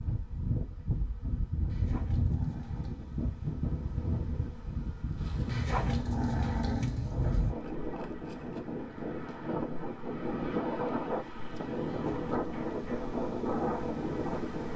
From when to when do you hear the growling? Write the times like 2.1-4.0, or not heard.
1.6-3.0, 5.5-7.5, 11.8-12.4.